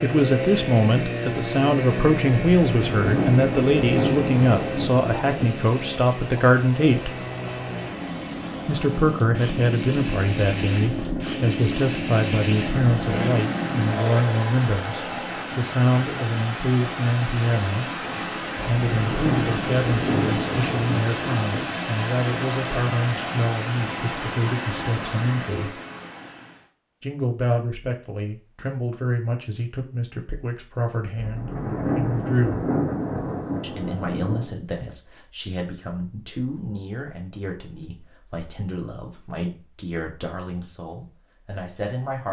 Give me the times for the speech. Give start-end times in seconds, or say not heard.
0.0-7.2, 8.7-17.9, 18.6-25.8, 27.0-32.6, 33.6-42.2.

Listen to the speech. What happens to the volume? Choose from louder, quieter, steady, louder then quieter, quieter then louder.
quieter.